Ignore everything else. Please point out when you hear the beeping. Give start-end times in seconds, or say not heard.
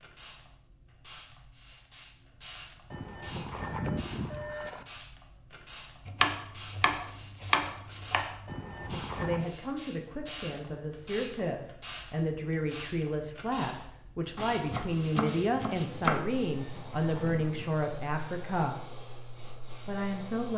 2.9-4.8, 8.4-9.5, 16.6-17.8.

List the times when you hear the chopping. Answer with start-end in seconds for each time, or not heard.
6.0-8.4, 14.3-16.3.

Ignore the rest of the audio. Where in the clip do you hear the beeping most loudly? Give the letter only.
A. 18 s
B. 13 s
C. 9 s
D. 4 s
D.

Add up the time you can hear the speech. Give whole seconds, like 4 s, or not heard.
10 s.